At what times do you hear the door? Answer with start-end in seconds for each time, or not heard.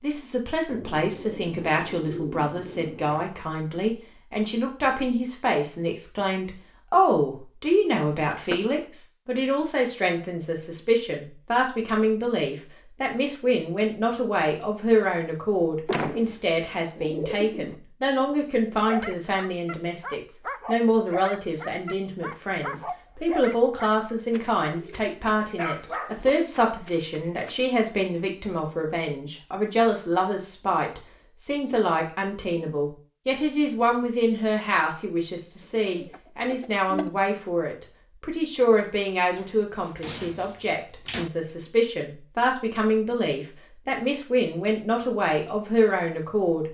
8.3-8.8, 15.8-16.2, 39.4-41.3.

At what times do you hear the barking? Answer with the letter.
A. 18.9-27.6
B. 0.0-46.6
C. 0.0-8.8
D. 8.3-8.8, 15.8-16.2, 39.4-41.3
A.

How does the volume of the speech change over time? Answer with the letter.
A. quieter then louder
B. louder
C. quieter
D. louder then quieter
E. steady
E.